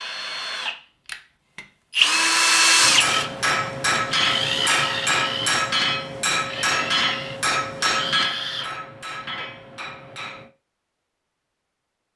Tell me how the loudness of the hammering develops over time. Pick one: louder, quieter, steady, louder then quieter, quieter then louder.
quieter.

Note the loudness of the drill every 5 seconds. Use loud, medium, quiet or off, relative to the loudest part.
loud, medium, off.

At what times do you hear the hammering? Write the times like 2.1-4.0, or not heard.
2.8-10.5.